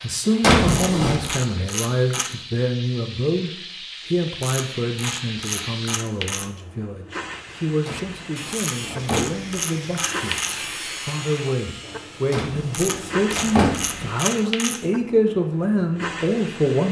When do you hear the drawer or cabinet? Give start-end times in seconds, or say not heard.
0.4-1.3, 7.8-9.5, 12.3-14.1.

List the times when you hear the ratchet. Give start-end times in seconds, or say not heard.
0.7-2.5, 4.4-6.5, 8.5-10.7, 12.7-14.8.